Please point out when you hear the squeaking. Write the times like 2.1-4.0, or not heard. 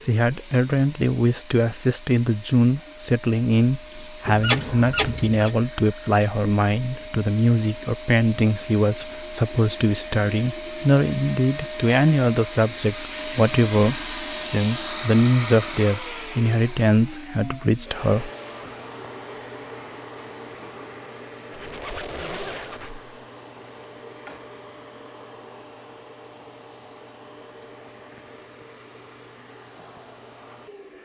4.2-5.5, 21.5-23.1.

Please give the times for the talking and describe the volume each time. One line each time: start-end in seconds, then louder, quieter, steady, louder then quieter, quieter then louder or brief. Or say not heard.
0.0-18.3 steady.